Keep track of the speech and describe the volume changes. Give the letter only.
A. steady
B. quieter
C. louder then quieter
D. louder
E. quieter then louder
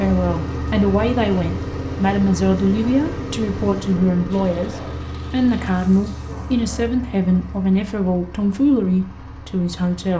A.